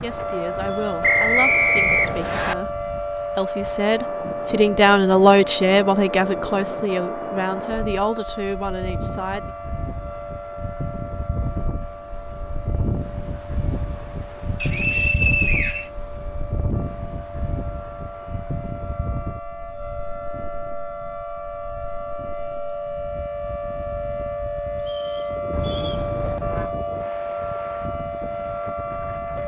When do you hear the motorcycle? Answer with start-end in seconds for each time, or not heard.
not heard.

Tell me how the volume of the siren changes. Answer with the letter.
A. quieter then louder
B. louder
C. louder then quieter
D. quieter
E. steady
A.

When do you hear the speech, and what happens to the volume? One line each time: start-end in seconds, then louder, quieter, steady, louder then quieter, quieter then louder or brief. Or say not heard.
0.0-9.5 louder then quieter.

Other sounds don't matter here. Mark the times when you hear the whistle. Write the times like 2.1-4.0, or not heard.
1.0-2.5, 14.6-15.8, 24.8-26.1.